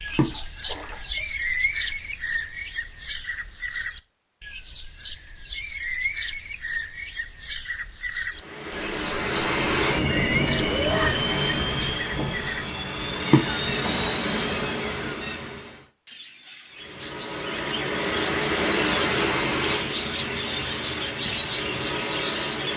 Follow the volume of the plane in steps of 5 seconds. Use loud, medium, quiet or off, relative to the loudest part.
off, loud, loud, loud, medium.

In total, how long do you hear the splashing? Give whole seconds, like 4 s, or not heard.
2 s.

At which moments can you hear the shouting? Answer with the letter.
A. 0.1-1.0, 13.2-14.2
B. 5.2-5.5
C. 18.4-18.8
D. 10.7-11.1
D.